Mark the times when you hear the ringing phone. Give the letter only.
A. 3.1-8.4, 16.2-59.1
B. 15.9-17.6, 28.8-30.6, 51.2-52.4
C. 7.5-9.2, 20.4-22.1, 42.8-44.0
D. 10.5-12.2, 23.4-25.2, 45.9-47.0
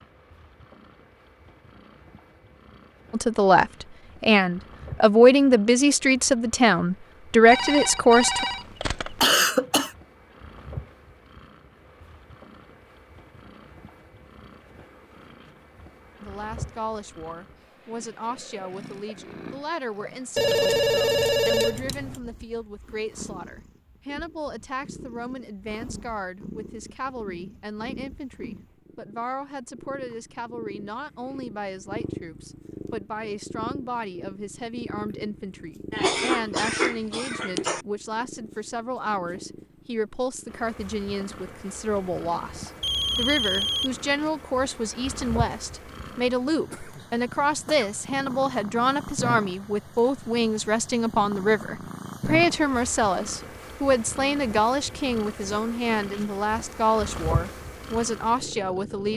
C.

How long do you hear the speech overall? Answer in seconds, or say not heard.
48 s.